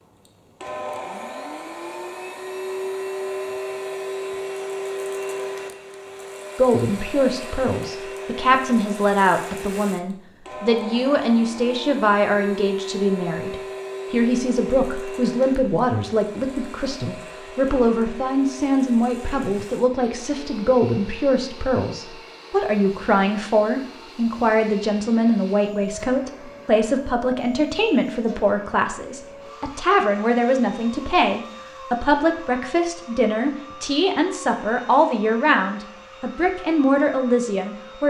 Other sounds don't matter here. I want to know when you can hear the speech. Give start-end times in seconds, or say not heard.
6.5-38.0.